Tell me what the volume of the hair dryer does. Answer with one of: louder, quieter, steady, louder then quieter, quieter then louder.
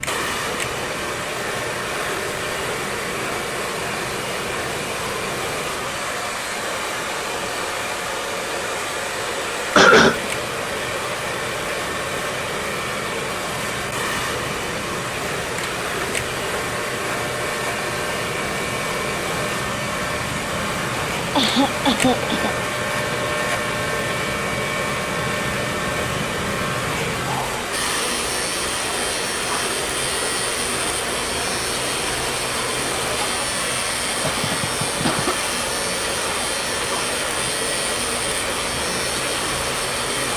steady.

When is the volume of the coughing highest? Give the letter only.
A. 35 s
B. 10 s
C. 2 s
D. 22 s
B.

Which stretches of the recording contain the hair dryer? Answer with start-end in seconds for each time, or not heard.
0.0-40.3.